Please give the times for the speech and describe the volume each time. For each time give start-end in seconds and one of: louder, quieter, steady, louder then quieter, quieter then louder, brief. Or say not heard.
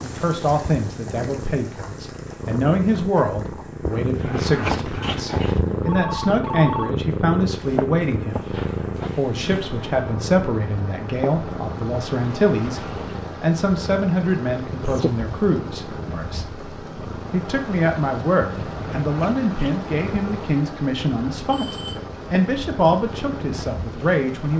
0.0-24.5 steady.